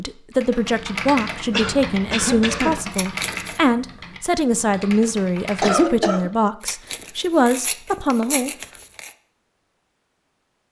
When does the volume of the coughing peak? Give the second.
6 s.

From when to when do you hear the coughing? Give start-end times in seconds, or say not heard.
1.5-2.8, 5.6-6.3.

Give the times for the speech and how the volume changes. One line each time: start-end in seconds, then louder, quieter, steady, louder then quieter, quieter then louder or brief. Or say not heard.
0.0-8.5 steady.